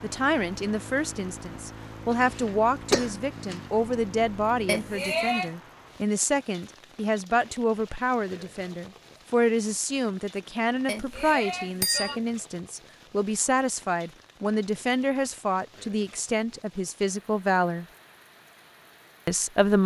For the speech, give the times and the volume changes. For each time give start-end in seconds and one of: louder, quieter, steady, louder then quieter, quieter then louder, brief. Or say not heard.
0.0-17.9 steady
19.2-19.8 brief.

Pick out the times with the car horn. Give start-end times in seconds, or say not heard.
not heard.